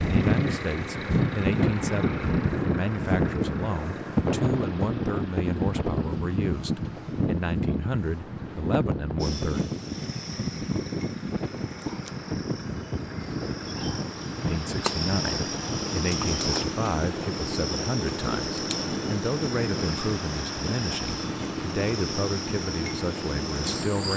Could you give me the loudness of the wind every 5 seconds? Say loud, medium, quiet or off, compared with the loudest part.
loud, loud, medium, medium, medium.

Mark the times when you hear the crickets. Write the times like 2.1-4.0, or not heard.
9.2-24.1.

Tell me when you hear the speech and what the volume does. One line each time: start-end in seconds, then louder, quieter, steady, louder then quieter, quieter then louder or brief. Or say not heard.
0.0-9.7 steady
14.4-24.1 steady.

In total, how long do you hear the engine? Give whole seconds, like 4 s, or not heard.
24 s.